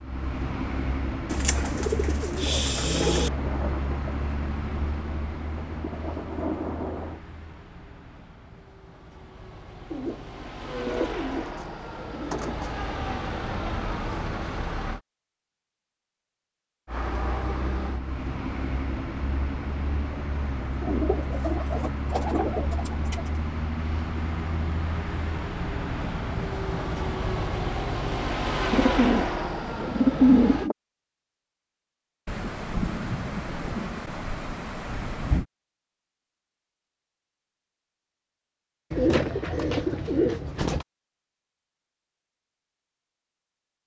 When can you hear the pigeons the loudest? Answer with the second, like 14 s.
30 s.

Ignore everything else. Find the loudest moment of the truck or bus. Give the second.
29 s.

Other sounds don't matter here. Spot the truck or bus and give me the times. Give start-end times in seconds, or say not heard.
0.0-15.0, 16.9-30.7.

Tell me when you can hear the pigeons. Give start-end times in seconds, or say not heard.
1.3-3.3, 9.9-12.8, 20.7-23.4, 28.7-30.8, 38.9-40.9.